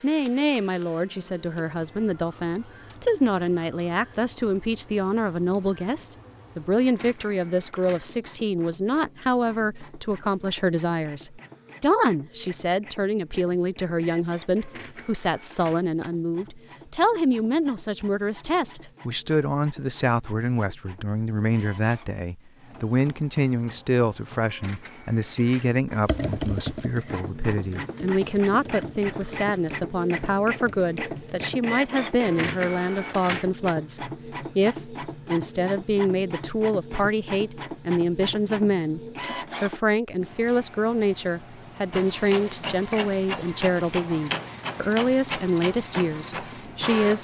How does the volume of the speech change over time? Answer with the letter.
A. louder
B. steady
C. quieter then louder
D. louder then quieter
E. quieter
B.